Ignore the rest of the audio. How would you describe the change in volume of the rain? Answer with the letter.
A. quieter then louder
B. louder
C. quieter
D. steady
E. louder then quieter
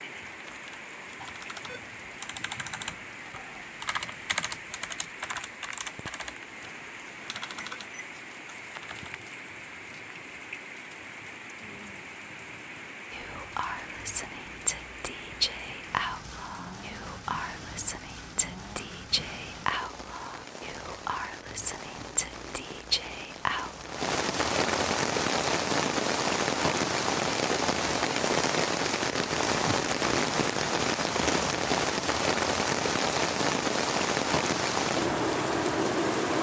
B.